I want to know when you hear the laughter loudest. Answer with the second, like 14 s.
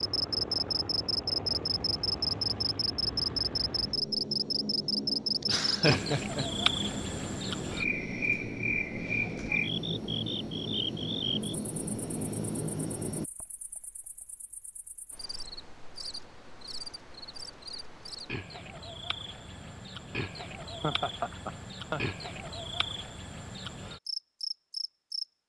6 s.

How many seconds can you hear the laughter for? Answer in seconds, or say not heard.
2 s.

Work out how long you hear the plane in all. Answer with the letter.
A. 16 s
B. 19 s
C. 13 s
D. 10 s
C.